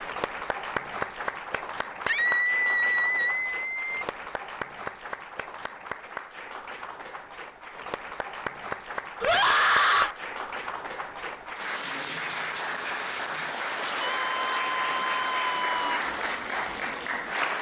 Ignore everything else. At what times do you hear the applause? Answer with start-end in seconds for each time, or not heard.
0.0-17.5.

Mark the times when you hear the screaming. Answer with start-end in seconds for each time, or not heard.
2.0-4.0, 9.2-10.2, 14.0-16.0.